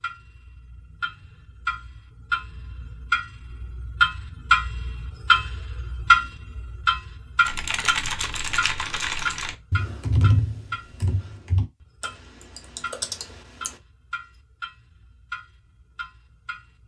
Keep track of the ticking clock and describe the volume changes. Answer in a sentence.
The volume of the ticking clock goes up, then down.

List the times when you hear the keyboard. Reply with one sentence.
The keyboard can be heard from 7.5 to 13.8 s.